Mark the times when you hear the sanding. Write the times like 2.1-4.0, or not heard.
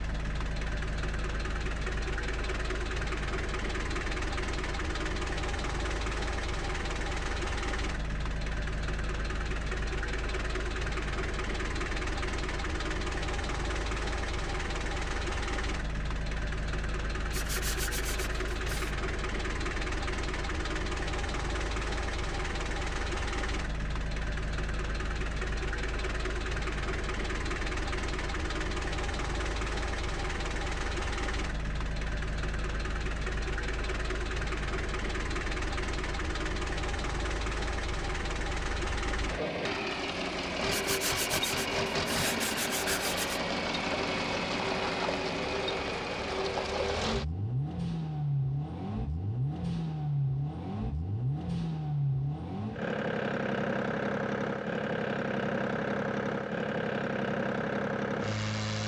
17.3-18.9, 40.7-43.4.